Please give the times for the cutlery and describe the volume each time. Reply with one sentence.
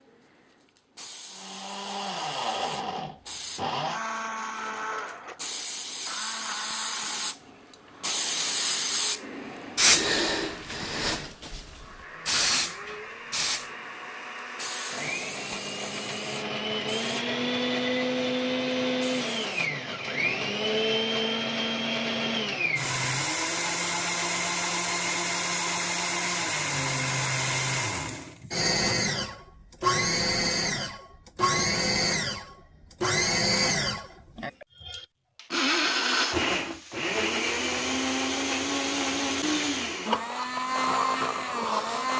The cutlery can't be heard in this clip.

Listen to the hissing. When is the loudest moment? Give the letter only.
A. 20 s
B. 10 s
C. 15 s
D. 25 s
B.